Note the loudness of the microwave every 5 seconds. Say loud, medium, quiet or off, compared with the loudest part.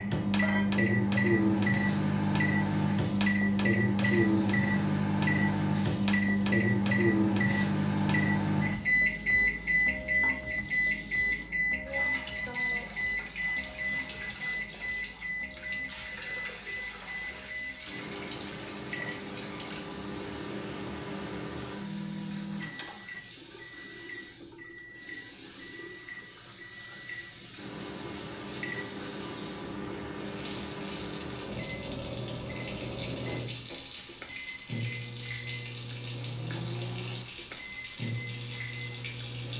loud, loud, medium, quiet, quiet, quiet, quiet, quiet.